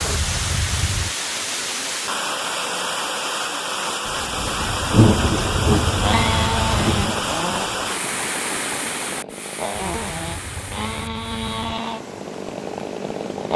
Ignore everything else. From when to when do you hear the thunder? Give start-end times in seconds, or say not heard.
4.0-7.9.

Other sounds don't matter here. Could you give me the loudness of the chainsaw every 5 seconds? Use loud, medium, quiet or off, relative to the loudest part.
off, loud, loud.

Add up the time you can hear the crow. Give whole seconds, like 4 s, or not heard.
not heard.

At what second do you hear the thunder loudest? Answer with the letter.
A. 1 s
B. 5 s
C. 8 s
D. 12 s
B.